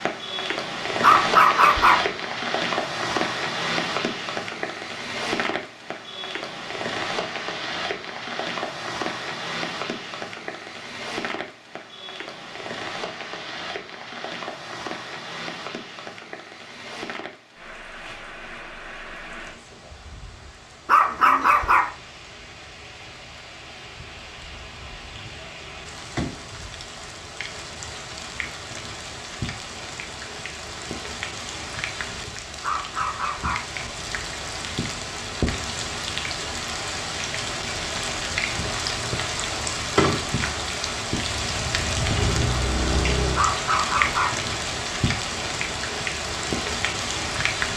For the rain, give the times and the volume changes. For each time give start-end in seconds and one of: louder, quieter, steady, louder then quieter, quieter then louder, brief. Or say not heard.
0.0-47.7 quieter then louder.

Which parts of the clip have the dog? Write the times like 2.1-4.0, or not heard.
1.0-2.0, 20.9-21.9, 32.6-33.6, 43.4-44.4.